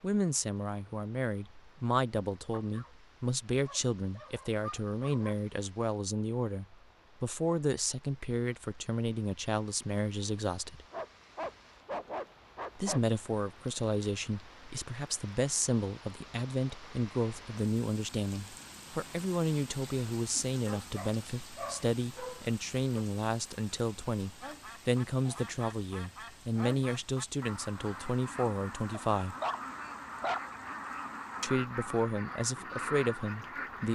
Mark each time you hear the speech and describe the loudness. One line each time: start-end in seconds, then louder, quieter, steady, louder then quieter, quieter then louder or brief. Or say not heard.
0.0-10.8 steady
12.8-29.4 steady
31.4-33.9 brief.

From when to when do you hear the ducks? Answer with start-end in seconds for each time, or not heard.
24.4-33.9.